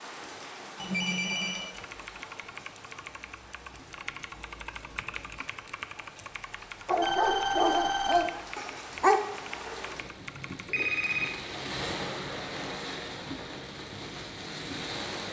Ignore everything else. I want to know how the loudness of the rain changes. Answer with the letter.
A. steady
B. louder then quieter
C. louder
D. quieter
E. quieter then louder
E.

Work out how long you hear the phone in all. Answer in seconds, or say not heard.
3 s.